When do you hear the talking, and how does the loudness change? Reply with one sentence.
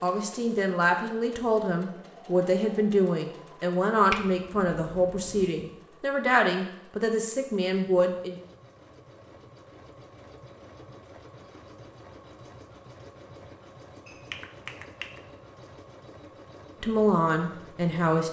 You can hear the talking from 0.0 to 8.3 s, at a steady volume; and briefly from 16.8 to 18.2 s.